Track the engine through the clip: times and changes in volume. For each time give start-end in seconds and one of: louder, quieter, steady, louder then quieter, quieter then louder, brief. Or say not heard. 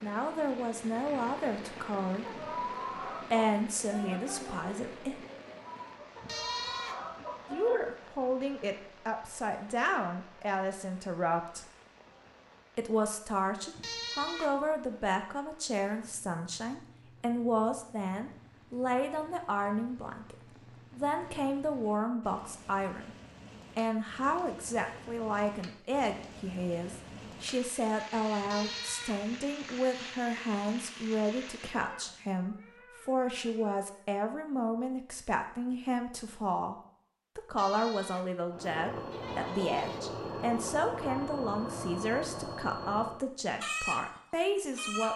38.5-43.2 steady.